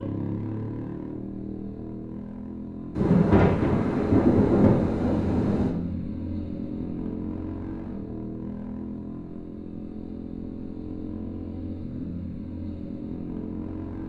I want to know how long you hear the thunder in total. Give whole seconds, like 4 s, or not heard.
3 s.